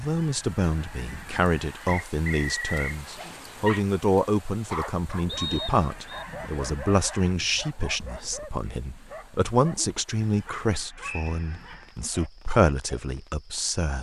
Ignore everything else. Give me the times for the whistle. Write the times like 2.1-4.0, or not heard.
1.9-3.0, 5.2-6.2, 11.0-11.4.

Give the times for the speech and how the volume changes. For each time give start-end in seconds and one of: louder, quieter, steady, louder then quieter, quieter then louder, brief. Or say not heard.
0.0-13.9 steady.